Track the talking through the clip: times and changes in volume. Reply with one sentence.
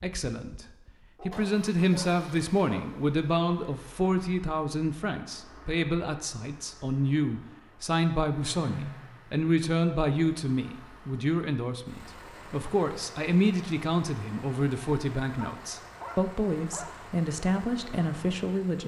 You can hear the talking from 0.0 to 18.8 s, at a steady volume.